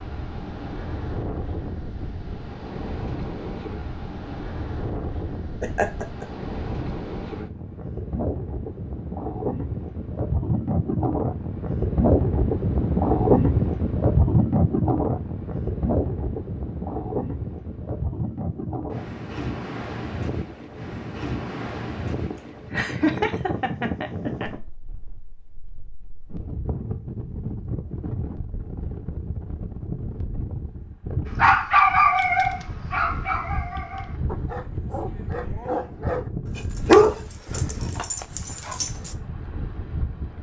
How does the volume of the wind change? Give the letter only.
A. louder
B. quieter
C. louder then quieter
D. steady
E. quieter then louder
C.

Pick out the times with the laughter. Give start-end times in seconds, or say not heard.
5.6-6.2, 22.3-24.5.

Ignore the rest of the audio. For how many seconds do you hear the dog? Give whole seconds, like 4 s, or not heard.
8 s.